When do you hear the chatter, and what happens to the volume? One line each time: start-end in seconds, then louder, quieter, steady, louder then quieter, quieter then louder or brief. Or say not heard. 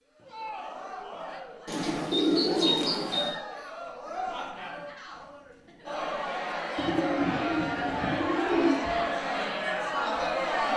0.1-10.7 louder.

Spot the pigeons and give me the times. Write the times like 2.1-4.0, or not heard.
1.6-3.4, 6.8-8.8.